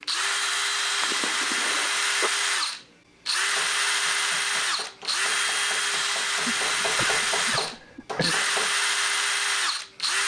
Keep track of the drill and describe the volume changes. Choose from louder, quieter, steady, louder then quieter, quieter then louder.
steady.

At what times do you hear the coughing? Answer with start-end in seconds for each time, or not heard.
1.0-2.3, 6.4-8.4.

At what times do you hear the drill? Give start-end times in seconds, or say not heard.
0.0-10.2.